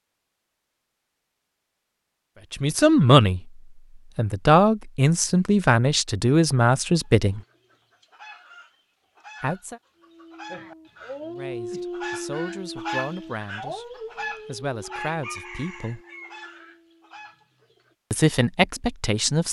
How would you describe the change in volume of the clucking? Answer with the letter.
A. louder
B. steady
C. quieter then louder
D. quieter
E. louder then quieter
E.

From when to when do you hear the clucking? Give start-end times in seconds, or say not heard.
7.2-17.9.